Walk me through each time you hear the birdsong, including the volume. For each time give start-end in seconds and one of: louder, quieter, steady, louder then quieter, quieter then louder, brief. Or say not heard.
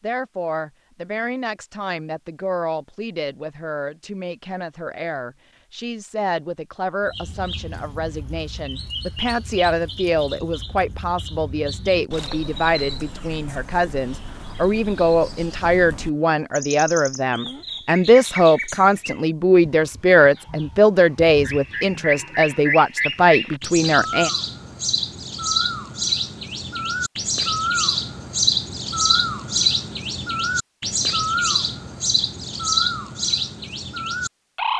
7.0-34.7 louder.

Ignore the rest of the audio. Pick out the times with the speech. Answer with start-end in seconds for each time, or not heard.
0.0-24.3.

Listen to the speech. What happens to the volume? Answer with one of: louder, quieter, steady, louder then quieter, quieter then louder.
louder.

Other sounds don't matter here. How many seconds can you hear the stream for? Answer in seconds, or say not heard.
not heard.